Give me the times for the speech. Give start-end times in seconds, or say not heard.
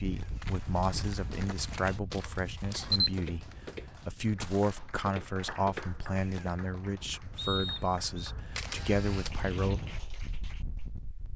0.0-9.8.